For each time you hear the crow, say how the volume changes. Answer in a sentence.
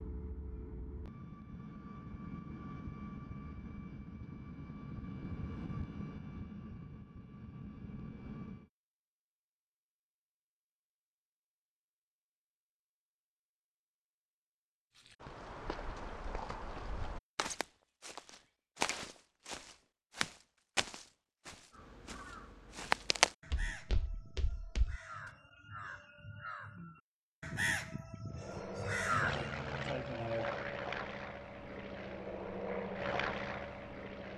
The crow can be heard from 21.7 to 29.6 s, getting louder.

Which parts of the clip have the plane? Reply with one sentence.
You can hear the plane from 0.0 to 8.7 s and from 28.3 to 34.3 s.